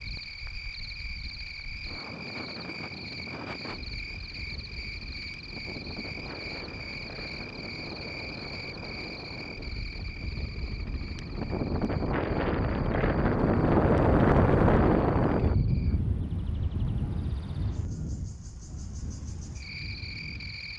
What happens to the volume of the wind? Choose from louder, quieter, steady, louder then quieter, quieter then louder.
louder then quieter.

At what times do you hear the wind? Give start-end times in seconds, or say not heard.
0.0-20.7.